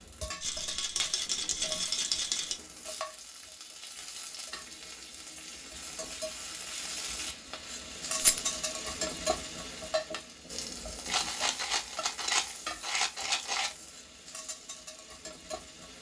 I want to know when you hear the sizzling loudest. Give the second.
9 s.